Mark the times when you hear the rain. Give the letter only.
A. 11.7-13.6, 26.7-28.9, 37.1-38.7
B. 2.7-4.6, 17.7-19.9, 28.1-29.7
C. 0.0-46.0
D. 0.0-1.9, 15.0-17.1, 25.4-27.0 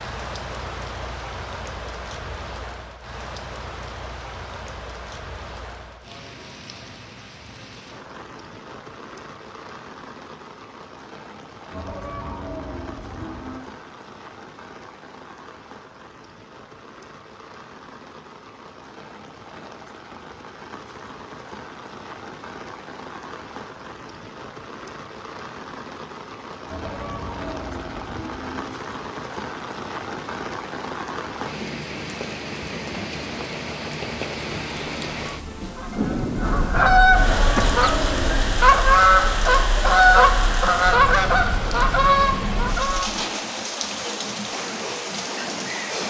C.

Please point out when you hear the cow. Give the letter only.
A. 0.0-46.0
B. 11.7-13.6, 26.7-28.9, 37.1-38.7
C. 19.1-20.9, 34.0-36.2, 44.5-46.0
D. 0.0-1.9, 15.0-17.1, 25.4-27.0
B.